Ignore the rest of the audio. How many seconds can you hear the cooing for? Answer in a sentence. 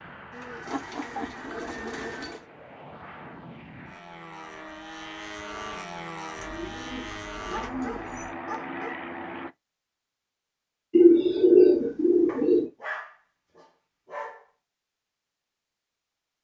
The cooing can be heard for 6 seconds in total.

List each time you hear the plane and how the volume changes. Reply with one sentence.
You can hear the plane from 0.0 to 9.6 s, getting louder.